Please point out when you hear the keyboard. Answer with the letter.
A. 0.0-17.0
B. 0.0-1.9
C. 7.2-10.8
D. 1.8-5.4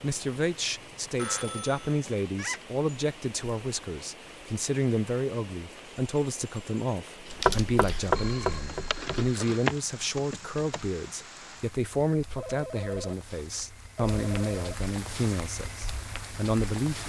C.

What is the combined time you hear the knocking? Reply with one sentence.
The knocking can be heard for 2 seconds in total.